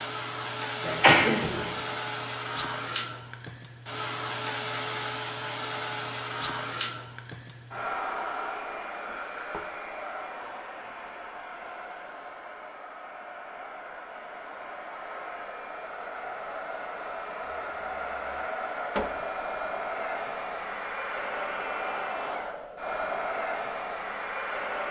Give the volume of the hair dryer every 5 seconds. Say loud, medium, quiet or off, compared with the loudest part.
loud, loud, medium, loud, loud.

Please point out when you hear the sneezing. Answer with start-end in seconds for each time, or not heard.
0.8-1.8.